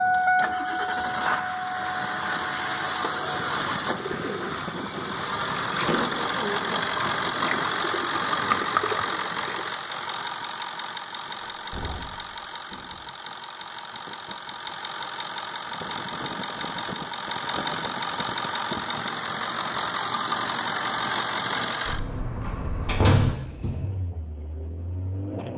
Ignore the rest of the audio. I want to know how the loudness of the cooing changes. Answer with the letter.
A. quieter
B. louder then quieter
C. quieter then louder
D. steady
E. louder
E.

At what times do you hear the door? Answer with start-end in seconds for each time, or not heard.
5.8-6.4, 11.4-13.0, 22.4-23.9.